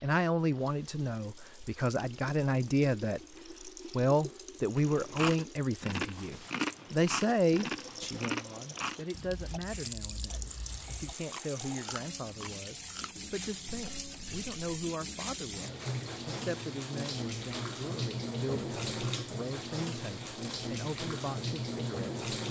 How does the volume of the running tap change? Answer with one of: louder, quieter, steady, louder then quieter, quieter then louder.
louder.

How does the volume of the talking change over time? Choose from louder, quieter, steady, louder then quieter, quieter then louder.
quieter.